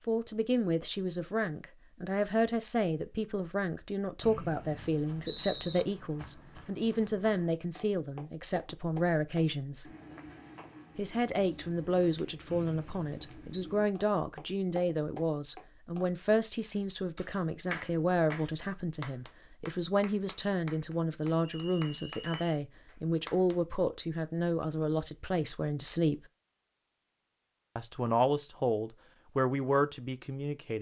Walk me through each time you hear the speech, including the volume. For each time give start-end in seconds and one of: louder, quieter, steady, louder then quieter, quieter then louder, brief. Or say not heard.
0.1-9.9 steady
10.9-26.2 steady
27.8-30.7 brief.